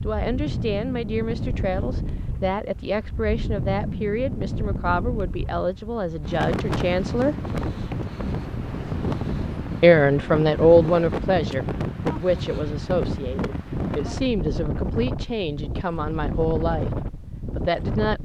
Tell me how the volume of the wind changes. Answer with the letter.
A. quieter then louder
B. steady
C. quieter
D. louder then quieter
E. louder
B.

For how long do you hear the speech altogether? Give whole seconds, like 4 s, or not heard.
16 s.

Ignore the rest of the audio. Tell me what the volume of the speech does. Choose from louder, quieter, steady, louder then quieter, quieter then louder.
louder then quieter.